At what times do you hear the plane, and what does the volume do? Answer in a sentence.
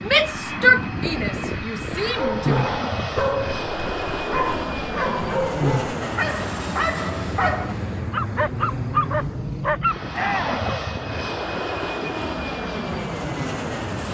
You can hear the plane from 0.0 to 14.0 s, at a steady volume.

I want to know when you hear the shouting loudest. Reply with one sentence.
The loudest moment of the shouting is at 1 second.